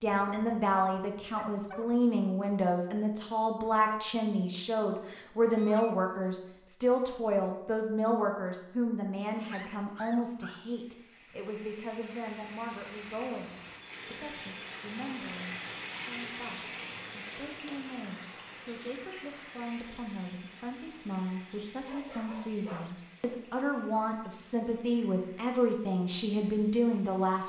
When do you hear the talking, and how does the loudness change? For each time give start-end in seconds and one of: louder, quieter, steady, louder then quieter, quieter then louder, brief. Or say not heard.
0.0-27.4 quieter then louder.